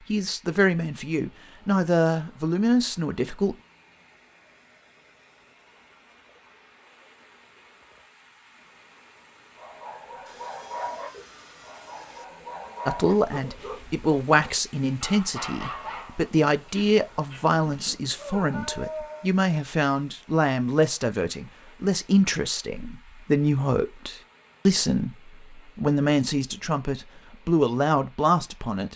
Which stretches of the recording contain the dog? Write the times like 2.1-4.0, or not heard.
9.6-19.3.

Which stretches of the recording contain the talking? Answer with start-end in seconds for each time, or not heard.
0.1-3.5, 12.8-28.9.